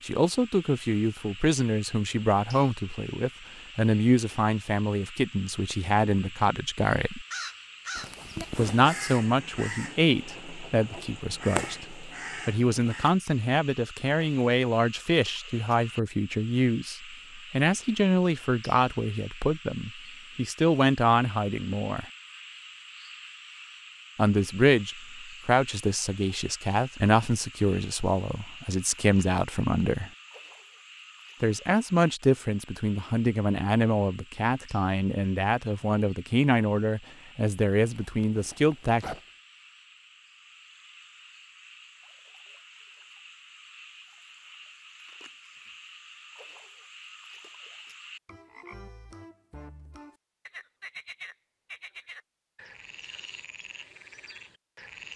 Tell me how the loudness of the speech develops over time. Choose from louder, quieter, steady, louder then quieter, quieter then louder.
steady.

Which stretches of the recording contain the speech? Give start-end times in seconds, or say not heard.
0.0-7.2, 8.6-22.1, 24.1-30.1, 31.4-39.0.